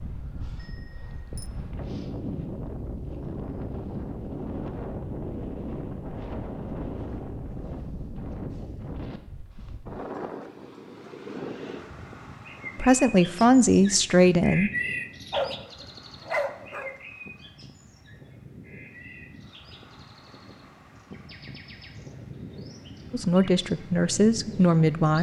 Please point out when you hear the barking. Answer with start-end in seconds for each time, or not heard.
15.3-16.9.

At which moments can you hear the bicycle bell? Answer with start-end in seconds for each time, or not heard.
0.6-1.5.